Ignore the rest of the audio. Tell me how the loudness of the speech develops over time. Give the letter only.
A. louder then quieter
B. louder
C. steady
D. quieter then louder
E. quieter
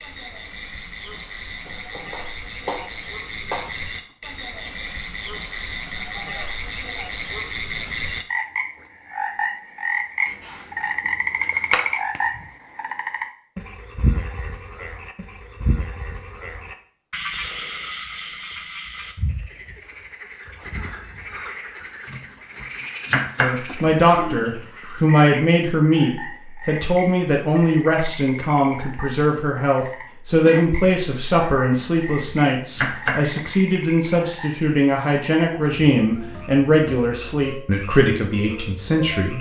C.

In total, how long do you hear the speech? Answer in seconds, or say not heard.
16 s.